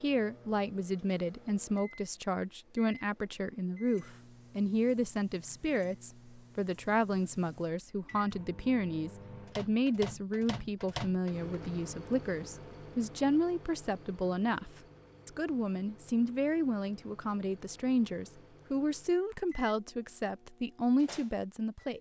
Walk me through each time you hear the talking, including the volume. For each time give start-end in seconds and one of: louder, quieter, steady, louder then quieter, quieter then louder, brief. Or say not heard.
0.0-21.9 steady.